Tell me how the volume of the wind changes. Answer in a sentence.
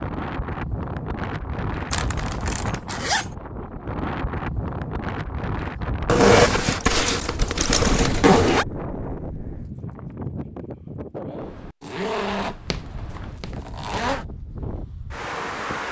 The volume of the wind goes down.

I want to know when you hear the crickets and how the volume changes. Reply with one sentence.
You can't hear the crickets here.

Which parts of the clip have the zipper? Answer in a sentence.
The zipper can be heard from 1.9 to 3.4 s, from 6.0 to 8.7 s, from 11.8 to 12.8 s and from 13.4 to 14.2 s.